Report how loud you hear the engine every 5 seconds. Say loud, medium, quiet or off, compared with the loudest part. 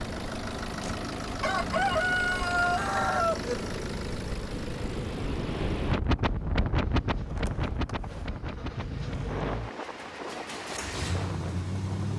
loud, medium, loud.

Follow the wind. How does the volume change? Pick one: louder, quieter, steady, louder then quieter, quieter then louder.
louder then quieter.